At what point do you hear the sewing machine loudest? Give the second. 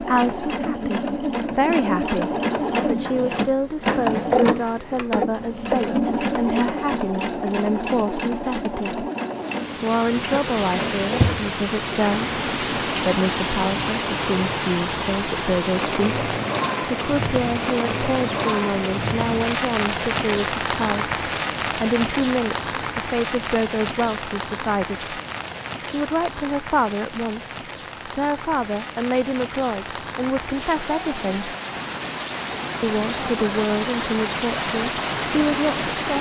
4 s.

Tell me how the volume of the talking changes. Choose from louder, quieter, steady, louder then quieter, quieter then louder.
steady.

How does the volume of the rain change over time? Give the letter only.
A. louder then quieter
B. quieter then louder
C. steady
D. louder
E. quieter
B.